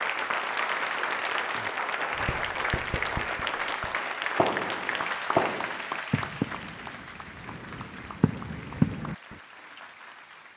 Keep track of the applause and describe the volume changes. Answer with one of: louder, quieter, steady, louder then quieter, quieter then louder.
quieter.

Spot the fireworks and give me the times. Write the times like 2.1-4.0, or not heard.
2.1-9.3.